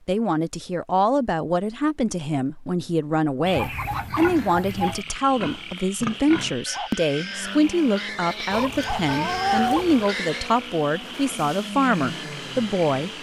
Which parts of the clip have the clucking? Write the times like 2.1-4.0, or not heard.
3.5-5.0, 8.5-10.1.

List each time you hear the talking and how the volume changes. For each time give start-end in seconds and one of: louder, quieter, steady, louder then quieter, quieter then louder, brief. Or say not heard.
0.1-13.1 steady.